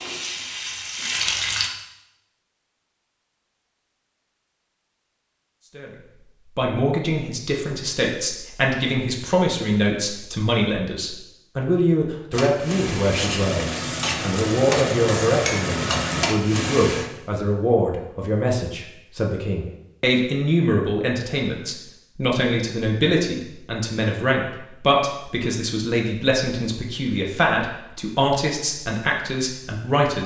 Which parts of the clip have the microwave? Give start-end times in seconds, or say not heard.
not heard.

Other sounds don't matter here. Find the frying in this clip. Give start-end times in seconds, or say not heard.
0.0-1.7, 12.3-17.1.